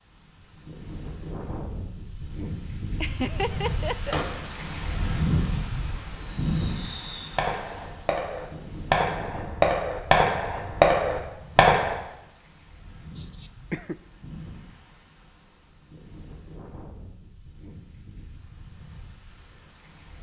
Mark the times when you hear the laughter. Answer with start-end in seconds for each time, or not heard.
3.0-4.2, 13.2-13.9.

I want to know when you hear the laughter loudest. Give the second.
3 s.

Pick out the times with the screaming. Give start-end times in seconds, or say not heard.
not heard.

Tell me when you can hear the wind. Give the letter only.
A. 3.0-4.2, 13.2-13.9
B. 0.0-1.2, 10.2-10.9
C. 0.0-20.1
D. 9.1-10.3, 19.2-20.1
C.